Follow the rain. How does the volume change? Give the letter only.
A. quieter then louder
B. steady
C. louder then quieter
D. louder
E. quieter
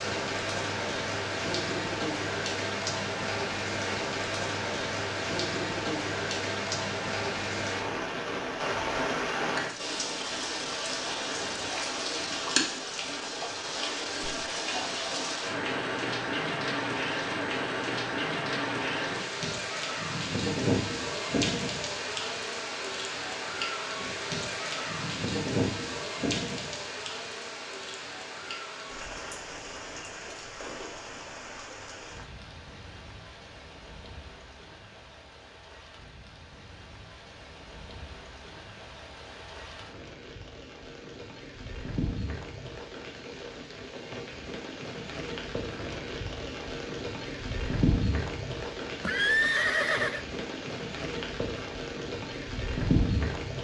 A.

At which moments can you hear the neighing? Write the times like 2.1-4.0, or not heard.
49.0-50.2.